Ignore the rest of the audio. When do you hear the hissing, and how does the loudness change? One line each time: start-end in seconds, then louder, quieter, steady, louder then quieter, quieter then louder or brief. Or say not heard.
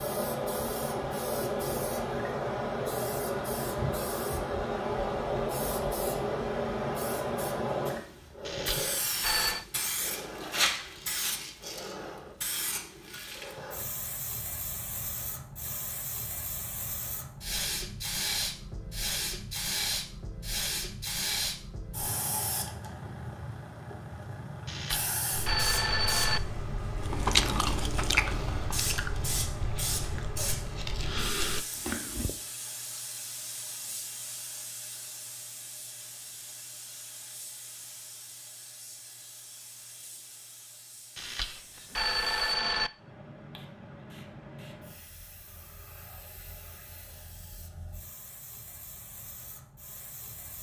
0.0-50.5 quieter.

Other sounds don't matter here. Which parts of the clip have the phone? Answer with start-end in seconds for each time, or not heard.
8.4-9.7, 24.6-26.4, 41.1-42.9.